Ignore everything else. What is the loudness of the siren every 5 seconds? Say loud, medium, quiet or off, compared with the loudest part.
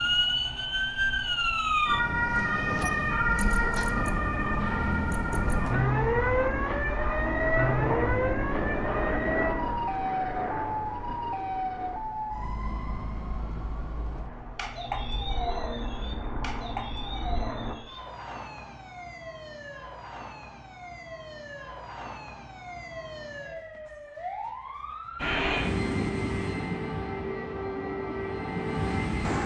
loud, loud, medium, quiet, quiet, medium.